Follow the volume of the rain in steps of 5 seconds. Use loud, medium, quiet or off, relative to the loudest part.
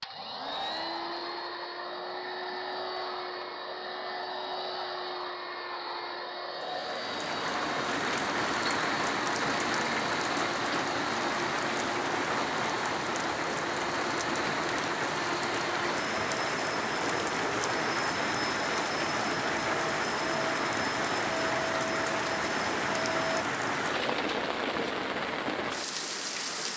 off, loud, loud, loud, loud, loud.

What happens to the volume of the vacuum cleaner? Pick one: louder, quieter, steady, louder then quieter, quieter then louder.
steady.